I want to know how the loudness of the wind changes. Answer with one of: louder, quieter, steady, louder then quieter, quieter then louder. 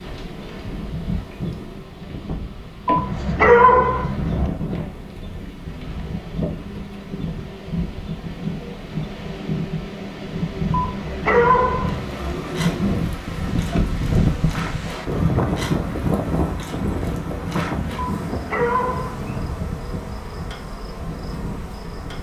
louder then quieter.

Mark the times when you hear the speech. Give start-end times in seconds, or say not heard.
not heard.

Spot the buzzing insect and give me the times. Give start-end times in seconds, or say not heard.
0.0-22.1.